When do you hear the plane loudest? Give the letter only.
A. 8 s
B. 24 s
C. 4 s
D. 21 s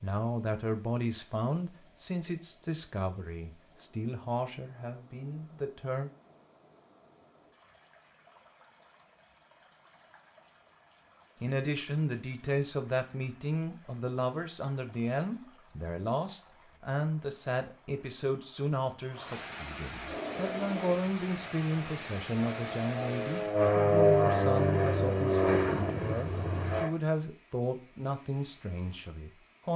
B.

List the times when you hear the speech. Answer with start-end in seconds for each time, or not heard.
0.0-6.1, 11.4-29.7.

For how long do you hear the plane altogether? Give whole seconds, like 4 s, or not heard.
7 s.